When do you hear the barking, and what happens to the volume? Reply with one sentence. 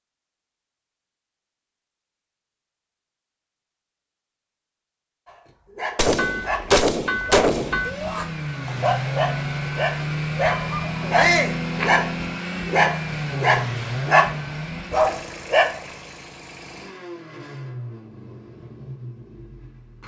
You can hear the barking from 5.2 to 15.8 s, getting louder.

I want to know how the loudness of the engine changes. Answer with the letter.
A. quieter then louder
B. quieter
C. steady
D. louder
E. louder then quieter
B.